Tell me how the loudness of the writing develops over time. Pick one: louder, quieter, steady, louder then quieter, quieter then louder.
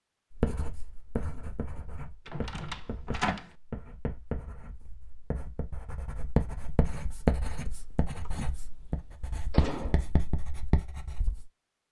louder.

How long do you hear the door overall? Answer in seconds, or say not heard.
3 s.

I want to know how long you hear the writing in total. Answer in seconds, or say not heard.
11 s.